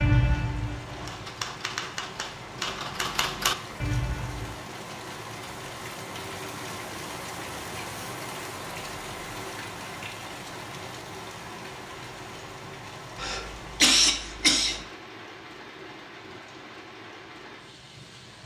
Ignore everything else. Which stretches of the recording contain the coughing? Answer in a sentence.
You can hear the coughing from 13.2 to 14.8 s.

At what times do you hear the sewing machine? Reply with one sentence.
The sewing machine can't be heard in this clip.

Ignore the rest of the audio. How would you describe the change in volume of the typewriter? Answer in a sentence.
The volume of the typewriter goes up.